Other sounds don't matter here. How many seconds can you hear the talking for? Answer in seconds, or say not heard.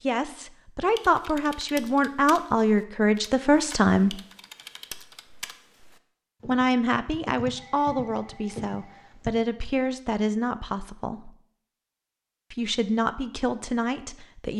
11 s.